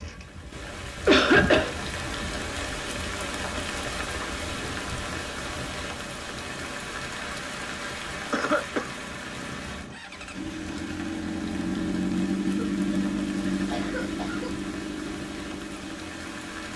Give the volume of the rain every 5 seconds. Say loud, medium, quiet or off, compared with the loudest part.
loud, loud, medium, medium.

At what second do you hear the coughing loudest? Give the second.
1 s.